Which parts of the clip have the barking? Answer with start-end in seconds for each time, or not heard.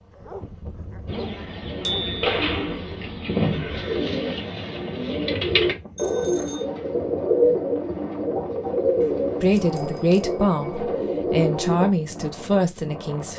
0.1-2.7.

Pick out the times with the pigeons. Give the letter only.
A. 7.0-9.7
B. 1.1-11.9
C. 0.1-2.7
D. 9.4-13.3
B.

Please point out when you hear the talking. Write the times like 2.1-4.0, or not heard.
9.4-13.3.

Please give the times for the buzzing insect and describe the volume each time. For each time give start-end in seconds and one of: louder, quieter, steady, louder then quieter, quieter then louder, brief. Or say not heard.
not heard.